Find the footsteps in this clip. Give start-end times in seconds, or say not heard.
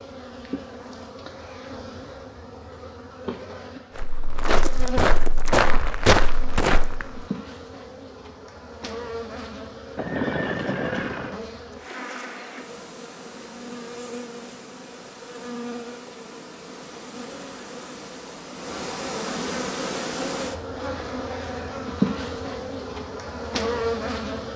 4.0-7.2.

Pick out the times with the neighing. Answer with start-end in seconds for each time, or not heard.
9.9-11.4.